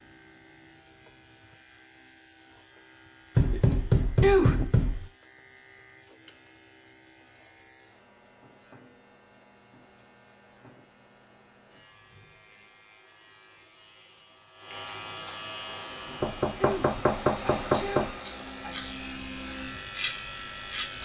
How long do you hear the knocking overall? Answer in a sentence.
The knocking can be heard for 4 seconds in total.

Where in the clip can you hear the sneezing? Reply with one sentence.
The sneezing can be heard from 4.2 to 4.7 s and from 16.6 to 18.9 s.